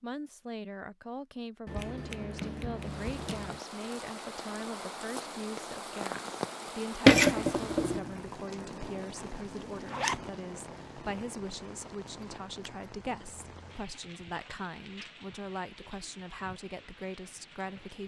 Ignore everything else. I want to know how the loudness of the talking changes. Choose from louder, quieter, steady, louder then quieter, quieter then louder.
steady.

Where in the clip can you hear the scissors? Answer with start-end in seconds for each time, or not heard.
1.6-3.6, 7.0-8.1, 12.1-12.9.